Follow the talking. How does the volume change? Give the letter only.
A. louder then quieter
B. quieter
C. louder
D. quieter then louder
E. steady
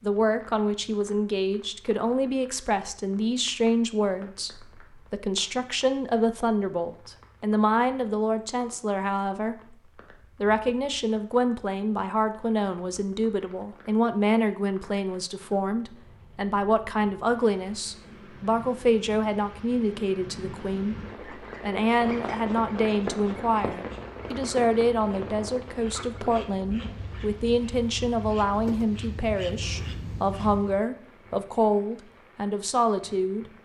E.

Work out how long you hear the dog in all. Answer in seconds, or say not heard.
not heard.